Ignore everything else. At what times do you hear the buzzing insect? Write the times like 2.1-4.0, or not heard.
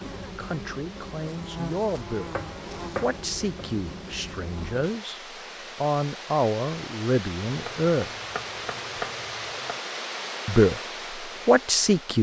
0.0-5.0.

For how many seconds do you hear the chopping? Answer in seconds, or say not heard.
4 s.